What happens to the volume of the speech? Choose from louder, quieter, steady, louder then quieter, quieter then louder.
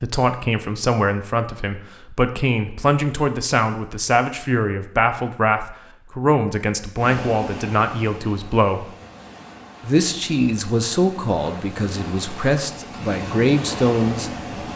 steady.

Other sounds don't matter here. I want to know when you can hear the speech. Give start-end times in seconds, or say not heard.
0.0-8.9, 9.8-14.7.